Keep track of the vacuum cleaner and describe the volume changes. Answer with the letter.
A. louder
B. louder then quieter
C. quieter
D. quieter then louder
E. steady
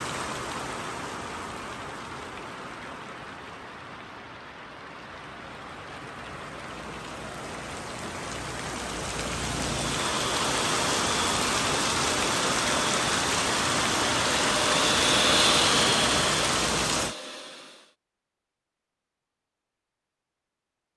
B.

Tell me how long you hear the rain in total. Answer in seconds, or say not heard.
17 s.